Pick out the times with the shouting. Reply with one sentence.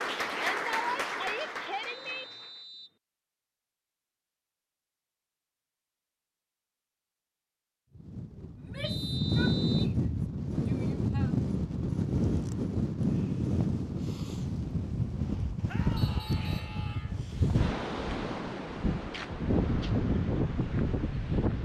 You can hear the shouting from 0.2 to 2.2 s, from 8.6 to 11.3 s and from 15.7 to 17.1 s.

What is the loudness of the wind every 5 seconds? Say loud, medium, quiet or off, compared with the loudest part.
off, loud, loud, loud, loud.